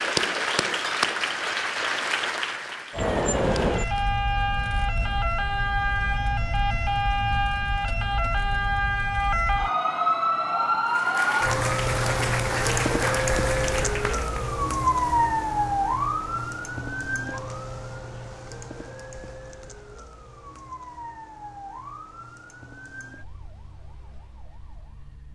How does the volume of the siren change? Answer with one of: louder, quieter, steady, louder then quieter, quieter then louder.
quieter.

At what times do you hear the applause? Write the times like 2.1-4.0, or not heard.
0.0-4.0, 10.8-14.6.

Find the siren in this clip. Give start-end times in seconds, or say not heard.
2.9-25.3.